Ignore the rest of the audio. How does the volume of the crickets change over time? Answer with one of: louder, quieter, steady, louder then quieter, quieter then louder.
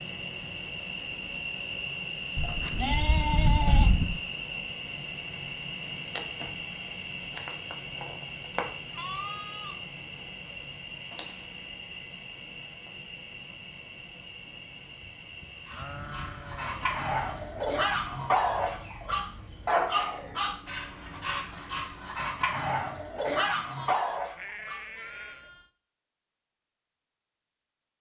quieter.